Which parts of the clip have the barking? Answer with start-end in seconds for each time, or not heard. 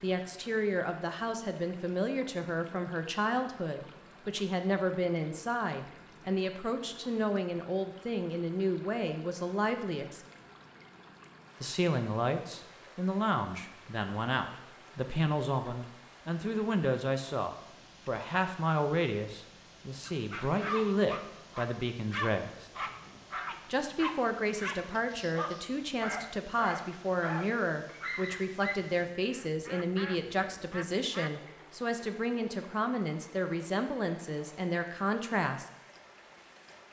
20.0-28.8.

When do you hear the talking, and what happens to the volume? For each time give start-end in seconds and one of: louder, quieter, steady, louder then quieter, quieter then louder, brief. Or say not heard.
0.0-10.2 steady
11.6-22.6 steady
23.6-35.6 steady.